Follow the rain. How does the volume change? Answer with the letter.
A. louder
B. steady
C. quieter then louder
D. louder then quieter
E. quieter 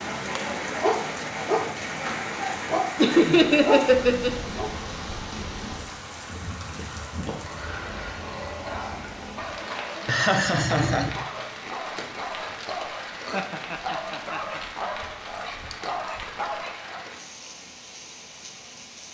E.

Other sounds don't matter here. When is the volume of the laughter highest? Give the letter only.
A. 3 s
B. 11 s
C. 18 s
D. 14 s
A.